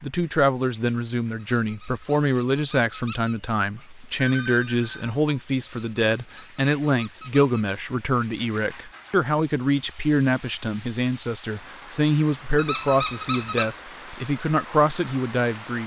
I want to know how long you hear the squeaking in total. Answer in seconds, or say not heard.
5 s.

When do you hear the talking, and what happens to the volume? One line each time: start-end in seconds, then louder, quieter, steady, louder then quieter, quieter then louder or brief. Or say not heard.
0.0-15.8 steady.